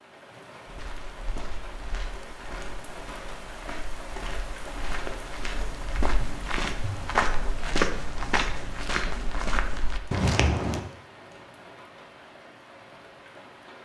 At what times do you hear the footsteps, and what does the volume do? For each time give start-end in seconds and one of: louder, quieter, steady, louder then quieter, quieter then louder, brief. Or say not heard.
0.7-10.8 louder.